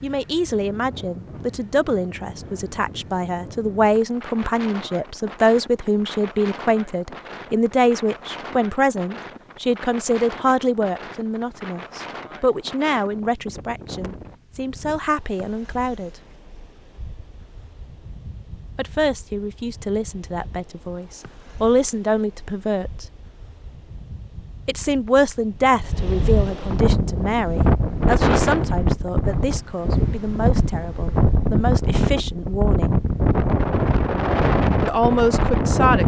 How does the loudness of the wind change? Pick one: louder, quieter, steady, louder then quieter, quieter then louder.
quieter then louder.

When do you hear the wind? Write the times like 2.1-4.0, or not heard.
0.0-36.0.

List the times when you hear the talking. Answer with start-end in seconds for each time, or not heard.
0.0-16.1, 18.8-23.1, 24.6-33.0, 34.8-36.0.